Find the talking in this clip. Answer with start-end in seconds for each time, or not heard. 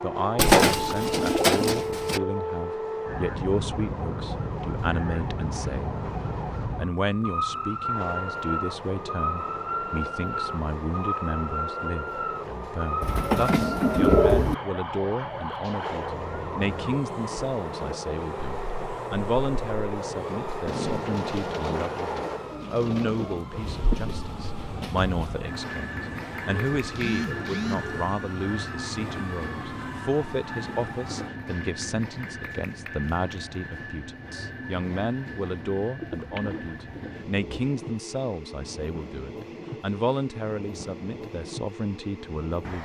0.0-6.0, 6.8-42.7.